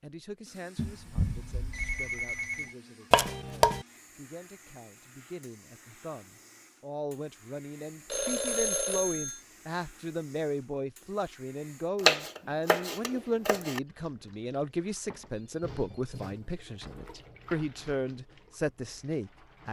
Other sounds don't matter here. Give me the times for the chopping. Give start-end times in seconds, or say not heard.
3.1-3.9, 12.0-13.8.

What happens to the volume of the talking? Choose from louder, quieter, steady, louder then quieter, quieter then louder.
louder.